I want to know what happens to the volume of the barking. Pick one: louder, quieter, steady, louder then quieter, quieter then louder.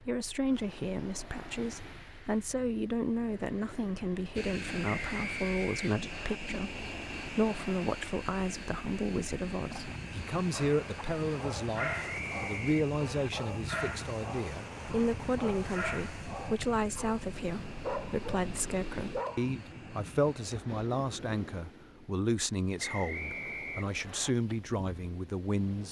steady.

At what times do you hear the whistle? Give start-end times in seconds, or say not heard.
4.8-6.4, 11.9-13.3, 22.8-24.3.